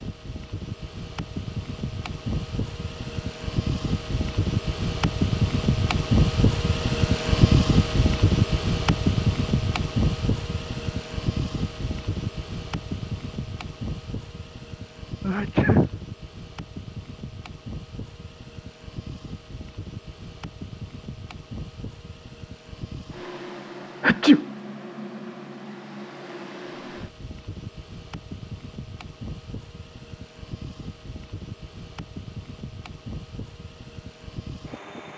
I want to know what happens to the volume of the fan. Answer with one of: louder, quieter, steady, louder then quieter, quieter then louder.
quieter.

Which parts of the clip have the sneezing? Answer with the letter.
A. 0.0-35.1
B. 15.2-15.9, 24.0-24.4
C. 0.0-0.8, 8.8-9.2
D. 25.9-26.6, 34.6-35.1
B.